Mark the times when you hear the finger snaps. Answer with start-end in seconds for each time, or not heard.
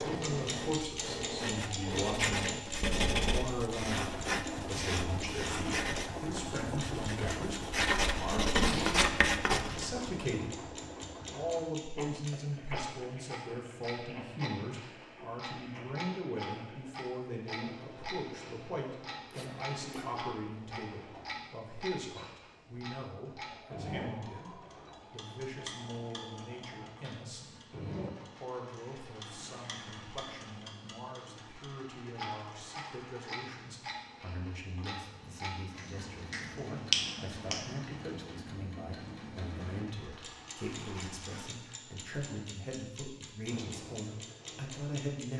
35.8-37.6.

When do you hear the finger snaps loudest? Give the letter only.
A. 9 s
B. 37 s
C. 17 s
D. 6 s
B.